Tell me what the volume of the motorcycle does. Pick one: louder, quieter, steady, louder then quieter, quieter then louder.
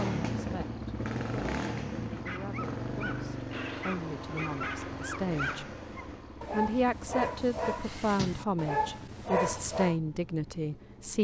quieter.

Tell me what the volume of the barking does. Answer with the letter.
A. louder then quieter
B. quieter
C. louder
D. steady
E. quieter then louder
C.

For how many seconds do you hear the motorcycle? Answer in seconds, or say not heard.
11 s.